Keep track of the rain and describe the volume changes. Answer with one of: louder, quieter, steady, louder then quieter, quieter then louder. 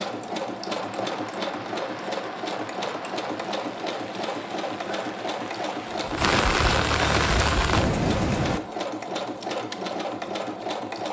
louder.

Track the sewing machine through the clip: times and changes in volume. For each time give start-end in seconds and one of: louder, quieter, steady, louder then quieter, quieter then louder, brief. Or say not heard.
0.0-11.0 steady.